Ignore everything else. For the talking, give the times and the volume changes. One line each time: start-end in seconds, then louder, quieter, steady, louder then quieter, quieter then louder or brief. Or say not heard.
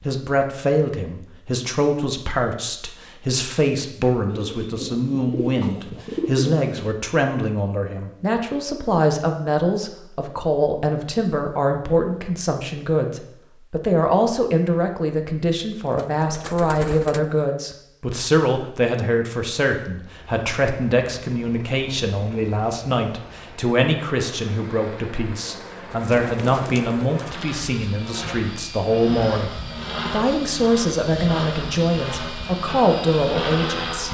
0.0-34.0 steady.